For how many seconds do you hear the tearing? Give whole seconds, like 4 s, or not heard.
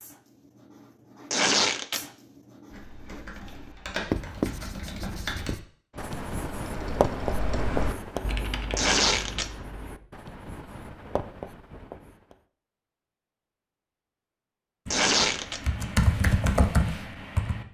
2 s.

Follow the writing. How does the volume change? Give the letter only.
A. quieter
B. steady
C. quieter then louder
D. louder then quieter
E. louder
D.